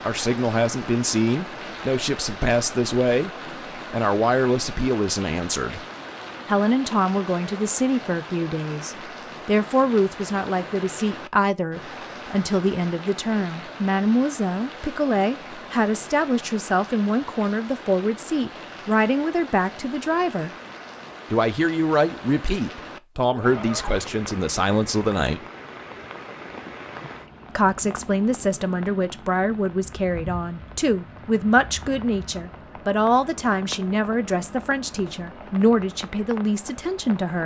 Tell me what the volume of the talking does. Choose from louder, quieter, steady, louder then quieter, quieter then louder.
steady.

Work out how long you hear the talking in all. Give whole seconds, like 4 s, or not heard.
34 s.